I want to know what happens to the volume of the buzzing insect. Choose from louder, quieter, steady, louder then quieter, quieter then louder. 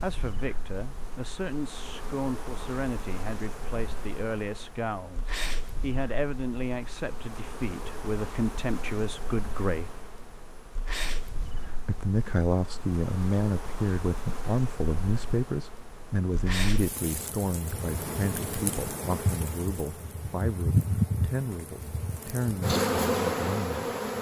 louder.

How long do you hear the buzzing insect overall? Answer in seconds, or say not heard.
24 s.